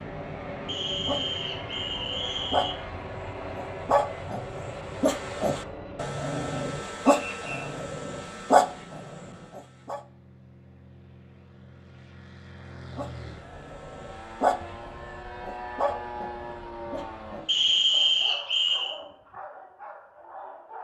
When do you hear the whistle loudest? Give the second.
18 s.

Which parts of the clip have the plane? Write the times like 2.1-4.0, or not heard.
0.0-17.4.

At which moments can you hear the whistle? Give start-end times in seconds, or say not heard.
0.7-2.8, 7.0-7.7, 17.4-18.9.